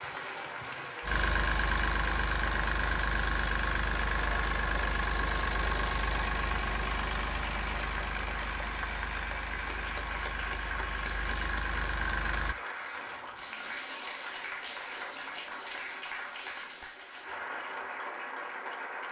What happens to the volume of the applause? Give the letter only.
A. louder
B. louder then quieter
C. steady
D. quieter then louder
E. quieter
C.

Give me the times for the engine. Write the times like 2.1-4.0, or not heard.
0.0-12.6.